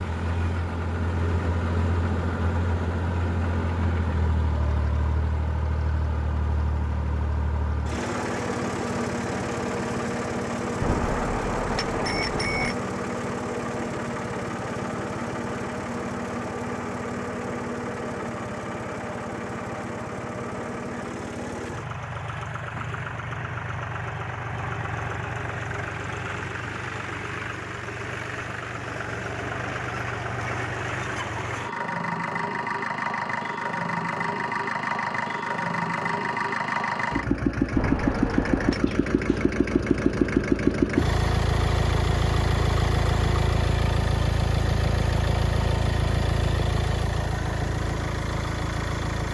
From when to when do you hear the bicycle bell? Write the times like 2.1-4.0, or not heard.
10.8-12.8, 37.8-38.9.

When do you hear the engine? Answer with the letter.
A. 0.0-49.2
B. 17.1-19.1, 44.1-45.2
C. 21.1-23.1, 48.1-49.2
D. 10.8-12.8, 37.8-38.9
A.